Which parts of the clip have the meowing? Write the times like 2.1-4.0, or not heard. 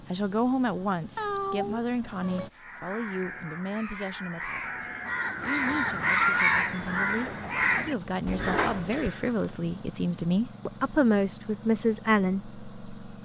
1.1-2.5.